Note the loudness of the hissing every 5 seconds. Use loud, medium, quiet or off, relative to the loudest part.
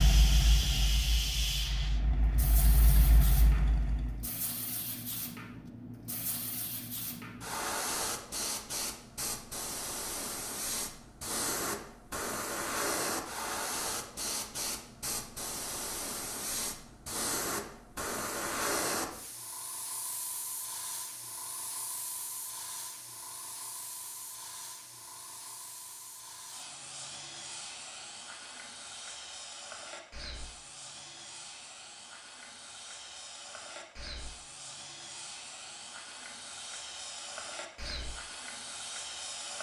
loud, loud, loud, loud, medium, medium, medium, medium.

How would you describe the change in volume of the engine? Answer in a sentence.
The volume of the engine goes down, then up.